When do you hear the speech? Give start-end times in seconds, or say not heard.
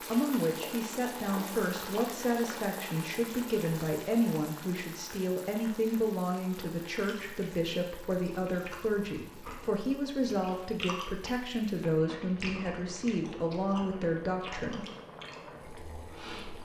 0.0-14.8.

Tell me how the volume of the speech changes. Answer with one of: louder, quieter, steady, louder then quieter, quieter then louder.
steady.